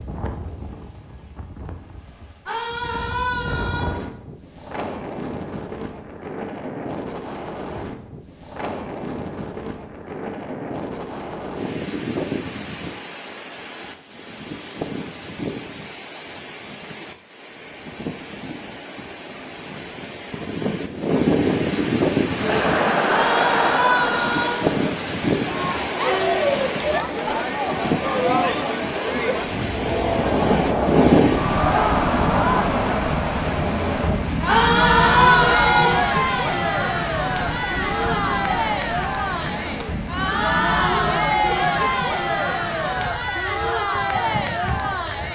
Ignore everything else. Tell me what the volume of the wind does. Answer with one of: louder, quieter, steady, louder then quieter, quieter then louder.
louder then quieter.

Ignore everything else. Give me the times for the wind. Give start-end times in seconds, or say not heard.
0.0-45.3.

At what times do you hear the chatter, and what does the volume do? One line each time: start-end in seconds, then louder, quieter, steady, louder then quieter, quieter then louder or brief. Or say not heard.
22.3-45.3 steady.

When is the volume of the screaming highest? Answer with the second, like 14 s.
35 s.